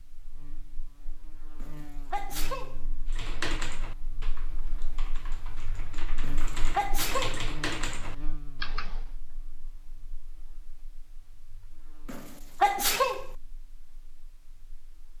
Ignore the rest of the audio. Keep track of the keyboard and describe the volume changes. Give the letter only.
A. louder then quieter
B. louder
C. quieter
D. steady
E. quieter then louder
E.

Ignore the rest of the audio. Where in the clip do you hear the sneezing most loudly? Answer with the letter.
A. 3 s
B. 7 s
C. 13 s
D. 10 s
C.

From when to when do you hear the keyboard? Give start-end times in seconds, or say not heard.
3.0-9.1.